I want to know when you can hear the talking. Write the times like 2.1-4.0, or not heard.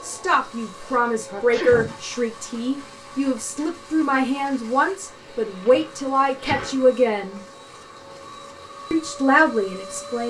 0.0-7.4, 8.9-10.2.